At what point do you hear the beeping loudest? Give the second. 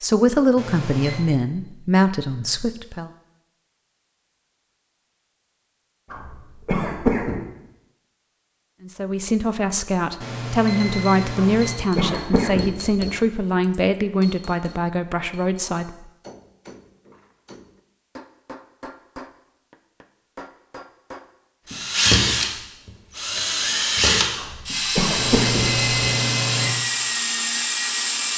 26 s.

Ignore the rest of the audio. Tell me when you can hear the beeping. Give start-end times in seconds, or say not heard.
0.6-1.2, 10.2-11.7, 25.1-26.7.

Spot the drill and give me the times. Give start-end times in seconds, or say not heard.
21.6-28.3.